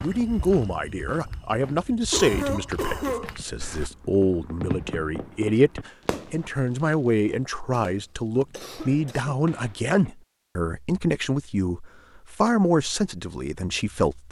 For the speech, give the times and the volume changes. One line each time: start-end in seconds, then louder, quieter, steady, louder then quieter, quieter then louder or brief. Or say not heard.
0.0-14.2 steady.